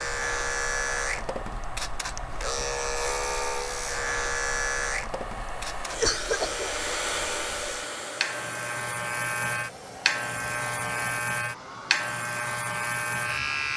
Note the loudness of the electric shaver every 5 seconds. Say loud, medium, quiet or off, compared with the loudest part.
loud, medium, loud.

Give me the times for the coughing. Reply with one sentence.
The coughing can be heard from 6.0 to 6.7 s.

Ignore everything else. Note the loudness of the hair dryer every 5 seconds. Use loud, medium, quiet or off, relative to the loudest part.
medium, loud, medium.